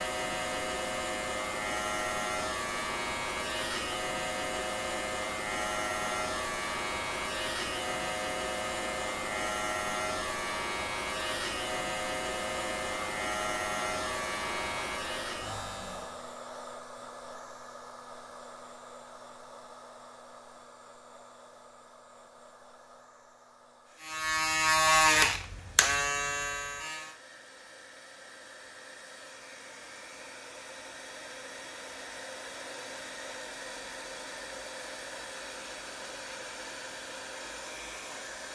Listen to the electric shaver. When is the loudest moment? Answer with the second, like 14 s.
25 s.